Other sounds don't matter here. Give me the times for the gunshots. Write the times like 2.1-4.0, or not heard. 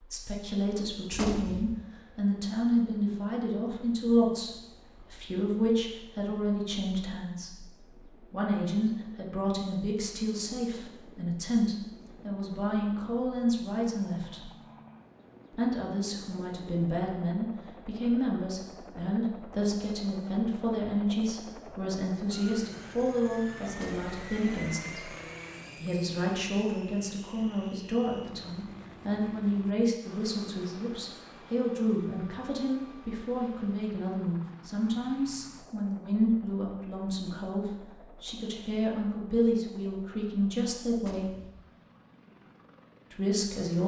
1.1-1.8, 23.7-24.1, 41.0-41.6.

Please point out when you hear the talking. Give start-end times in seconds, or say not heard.
0.0-14.5, 15.5-25.1, 25.8-41.3, 43.1-43.8.